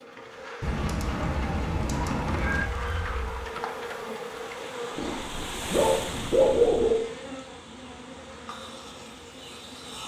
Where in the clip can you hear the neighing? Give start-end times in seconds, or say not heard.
0.6-2.6.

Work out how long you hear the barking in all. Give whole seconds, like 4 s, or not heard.
4 s.